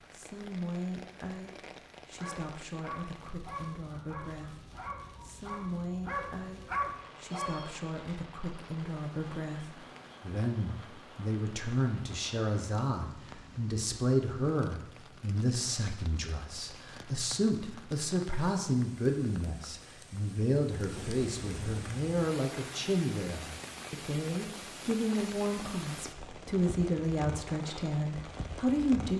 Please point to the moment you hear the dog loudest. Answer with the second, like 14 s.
7 s.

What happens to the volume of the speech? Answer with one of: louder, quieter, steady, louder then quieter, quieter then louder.
louder.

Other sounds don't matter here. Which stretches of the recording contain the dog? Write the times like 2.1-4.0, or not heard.
2.1-7.7.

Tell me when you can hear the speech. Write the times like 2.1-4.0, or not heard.
0.1-29.1.